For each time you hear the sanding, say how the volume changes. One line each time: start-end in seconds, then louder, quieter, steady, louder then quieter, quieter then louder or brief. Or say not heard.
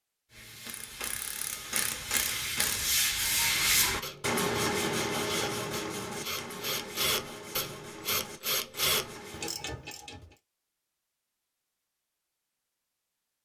0.3-9.6 louder then quieter.